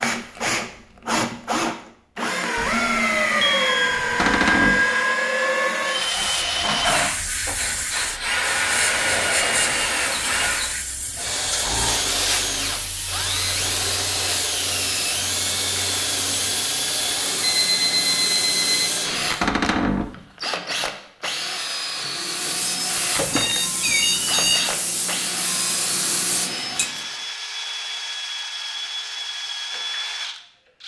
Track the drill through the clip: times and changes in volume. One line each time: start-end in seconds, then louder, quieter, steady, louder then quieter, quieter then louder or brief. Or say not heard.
0.0-30.8 quieter.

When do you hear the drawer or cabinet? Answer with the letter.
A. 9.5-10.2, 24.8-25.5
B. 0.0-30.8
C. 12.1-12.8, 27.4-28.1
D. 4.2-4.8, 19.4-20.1
D.